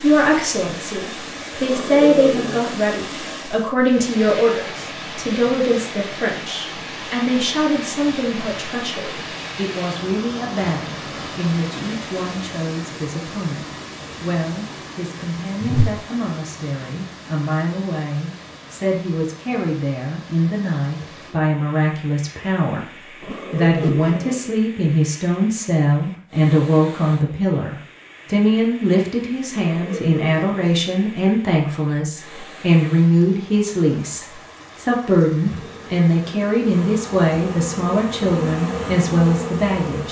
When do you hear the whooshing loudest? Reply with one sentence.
The loudest moment of the whooshing is at 16 seconds.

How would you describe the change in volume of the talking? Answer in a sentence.
The loudness of the talking goes down, then up.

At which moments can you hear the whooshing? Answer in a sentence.
You can hear the whooshing from 15.6 to 16.0 s and from 23.2 to 24.1 s.